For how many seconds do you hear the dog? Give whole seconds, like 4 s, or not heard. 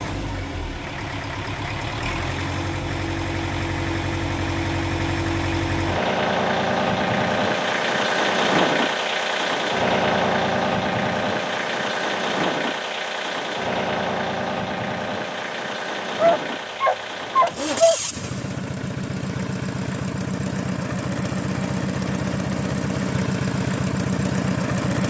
2 s.